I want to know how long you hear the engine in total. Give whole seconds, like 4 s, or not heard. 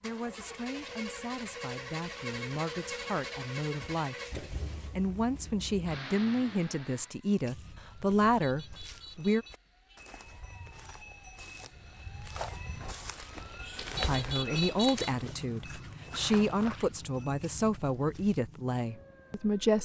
7 s.